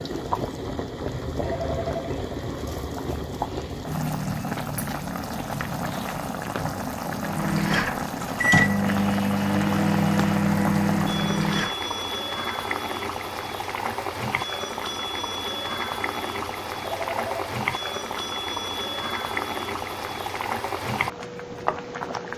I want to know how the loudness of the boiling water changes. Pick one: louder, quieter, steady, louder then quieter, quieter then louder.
steady.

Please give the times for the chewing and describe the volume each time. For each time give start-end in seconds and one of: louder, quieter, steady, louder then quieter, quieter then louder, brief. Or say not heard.
not heard.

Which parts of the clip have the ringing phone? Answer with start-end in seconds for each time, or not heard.
1.4-2.1, 16.9-17.4.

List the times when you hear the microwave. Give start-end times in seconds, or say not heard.
7.2-11.8.